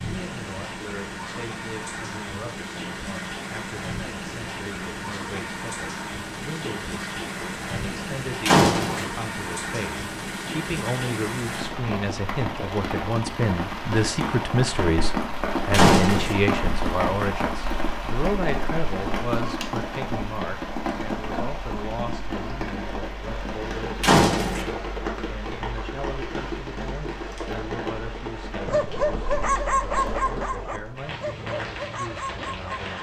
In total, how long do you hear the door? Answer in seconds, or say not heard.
2 s.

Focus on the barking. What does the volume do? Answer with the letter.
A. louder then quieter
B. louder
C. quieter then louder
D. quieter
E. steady
D.